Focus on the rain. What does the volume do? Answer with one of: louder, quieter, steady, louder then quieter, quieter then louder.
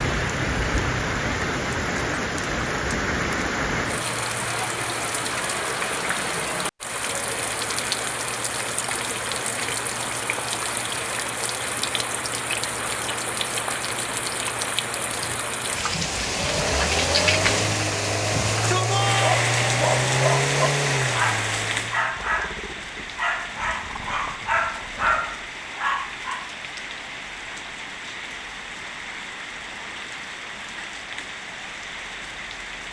quieter.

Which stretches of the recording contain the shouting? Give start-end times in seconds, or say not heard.
18.3-19.4.